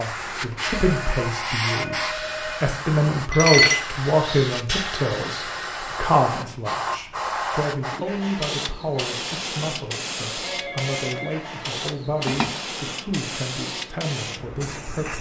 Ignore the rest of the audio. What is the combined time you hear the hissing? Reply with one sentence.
The hissing can be heard for 15 seconds in total.